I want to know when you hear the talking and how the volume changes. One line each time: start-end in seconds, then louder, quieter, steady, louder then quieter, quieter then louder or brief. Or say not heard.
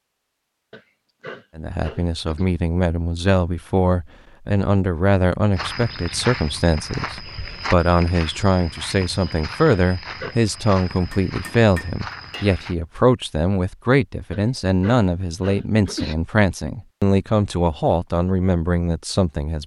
1.6-19.6 steady.